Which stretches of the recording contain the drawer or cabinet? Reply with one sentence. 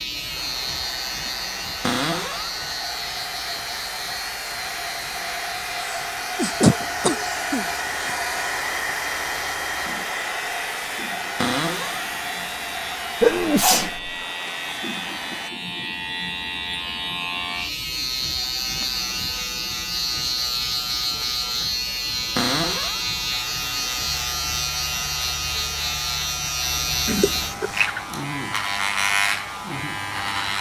You can hear the drawer or cabinet from 1.8 to 2.5 s, from 11.3 to 12.1 s and from 22.4 to 23.0 s.